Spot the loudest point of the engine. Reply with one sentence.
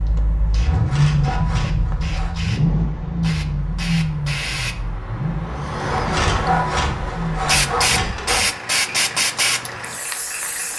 The loudest moment of the engine is at 1 second.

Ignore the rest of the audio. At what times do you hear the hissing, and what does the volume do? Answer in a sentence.
The hissing can be heard from 0.0 to 10.7 s, getting louder.